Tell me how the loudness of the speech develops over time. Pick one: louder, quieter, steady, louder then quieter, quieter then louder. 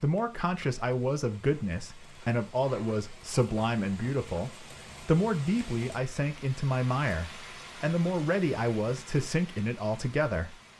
steady.